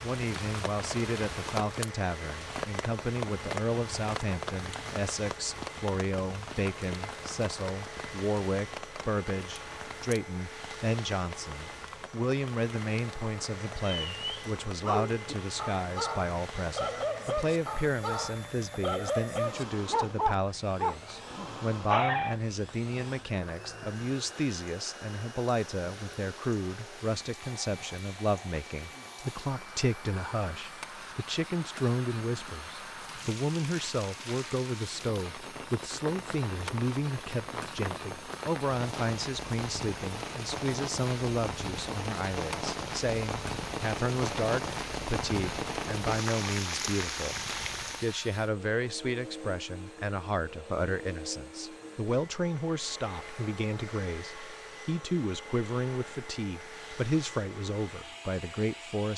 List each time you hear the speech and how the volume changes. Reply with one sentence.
You can hear the speech from 0.0 to 59.1 s, at a steady volume.